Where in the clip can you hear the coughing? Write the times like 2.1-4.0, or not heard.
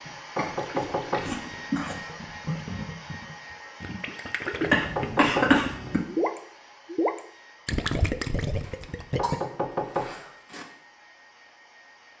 0.3-1.9, 4.7-6.0, 8.6-10.7.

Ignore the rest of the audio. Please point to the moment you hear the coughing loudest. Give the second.
5 s.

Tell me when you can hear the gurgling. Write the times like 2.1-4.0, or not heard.
0.5-9.3.